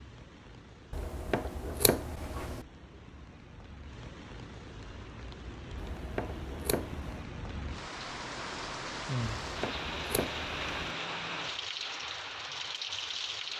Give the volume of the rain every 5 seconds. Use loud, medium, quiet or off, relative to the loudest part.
quiet, loud, loud.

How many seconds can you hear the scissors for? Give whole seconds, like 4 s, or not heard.
5 s.